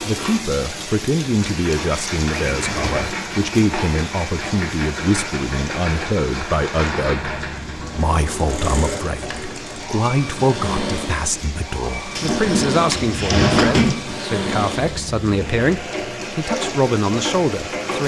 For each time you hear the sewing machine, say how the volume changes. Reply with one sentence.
You can hear the sewing machine from 0.0 to 18.0 s, at a steady volume.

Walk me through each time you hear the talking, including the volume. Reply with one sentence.
The talking can be heard from 0.0 to 18.0 s, at a steady volume.